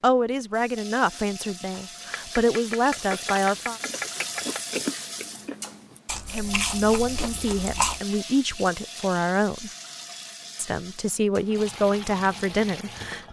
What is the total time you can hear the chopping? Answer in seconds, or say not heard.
3 s.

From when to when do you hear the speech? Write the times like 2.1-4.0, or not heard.
0.0-3.8, 6.3-9.7, 10.6-13.2.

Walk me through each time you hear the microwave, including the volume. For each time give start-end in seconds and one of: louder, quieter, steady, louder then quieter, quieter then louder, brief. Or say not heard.
not heard.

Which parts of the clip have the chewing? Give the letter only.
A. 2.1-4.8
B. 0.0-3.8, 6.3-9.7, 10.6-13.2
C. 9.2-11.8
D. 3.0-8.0
D.